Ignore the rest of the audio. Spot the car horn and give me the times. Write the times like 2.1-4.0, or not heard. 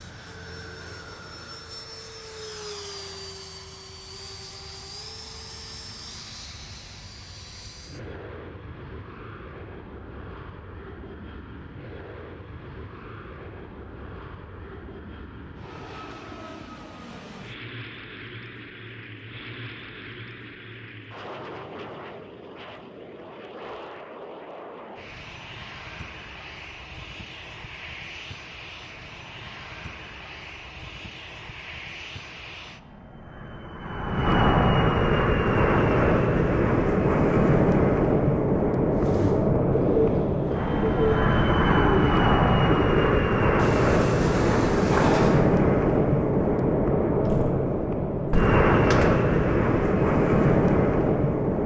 not heard.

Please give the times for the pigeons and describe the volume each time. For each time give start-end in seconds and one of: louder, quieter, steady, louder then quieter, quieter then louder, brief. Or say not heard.
38.9-45.4 steady.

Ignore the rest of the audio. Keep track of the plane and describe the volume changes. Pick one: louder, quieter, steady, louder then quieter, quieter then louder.
louder.